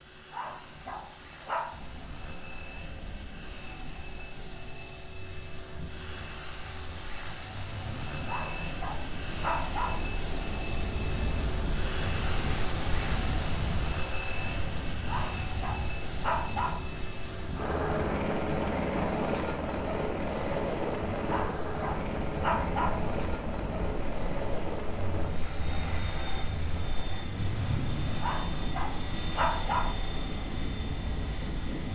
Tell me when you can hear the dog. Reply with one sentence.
The dog can be heard from 0.3 to 1.9 s, from 8.2 to 10.1 s, from 15.1 to 16.9 s, from 21.2 to 23.1 s and from 28.2 to 29.9 s.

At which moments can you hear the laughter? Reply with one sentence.
The laughter can't be heard in this clip.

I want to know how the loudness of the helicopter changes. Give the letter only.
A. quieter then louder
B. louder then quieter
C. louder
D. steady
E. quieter
B.